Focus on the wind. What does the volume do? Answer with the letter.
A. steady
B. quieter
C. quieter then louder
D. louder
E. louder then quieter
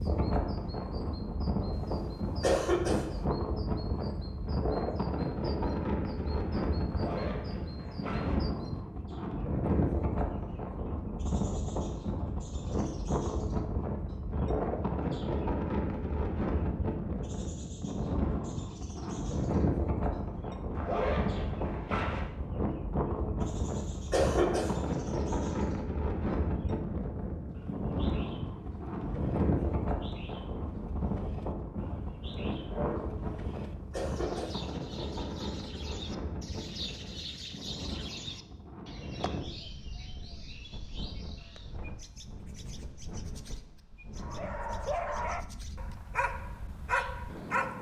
B.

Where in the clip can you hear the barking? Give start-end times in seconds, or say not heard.
44.2-47.7.